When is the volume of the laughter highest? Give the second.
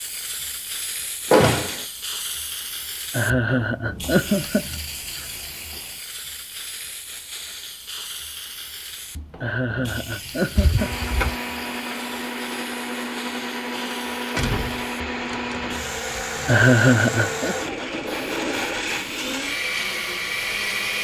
17 s.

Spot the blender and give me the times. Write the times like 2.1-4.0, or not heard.
10.8-20.9.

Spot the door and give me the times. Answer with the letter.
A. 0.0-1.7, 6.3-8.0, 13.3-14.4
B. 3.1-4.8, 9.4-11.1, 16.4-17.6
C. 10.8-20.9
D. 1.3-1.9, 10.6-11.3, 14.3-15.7
D.